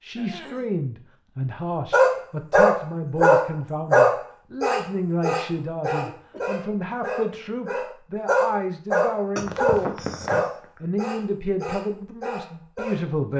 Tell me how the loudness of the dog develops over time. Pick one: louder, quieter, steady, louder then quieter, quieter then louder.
quieter.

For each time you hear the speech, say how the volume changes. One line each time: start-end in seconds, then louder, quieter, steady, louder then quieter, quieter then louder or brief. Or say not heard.
0.0-9.9 steady
10.8-13.3 brief.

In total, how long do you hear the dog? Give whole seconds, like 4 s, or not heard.
11 s.